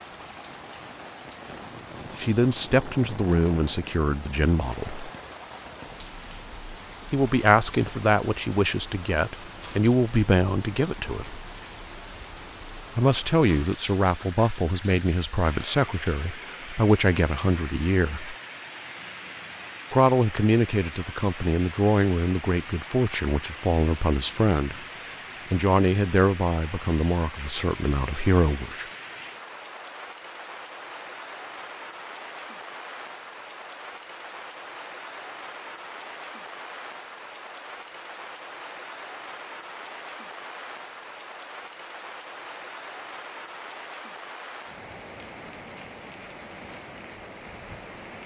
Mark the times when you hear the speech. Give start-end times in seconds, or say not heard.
2.1-5.1, 7.1-11.4, 12.9-18.4, 19.9-28.9.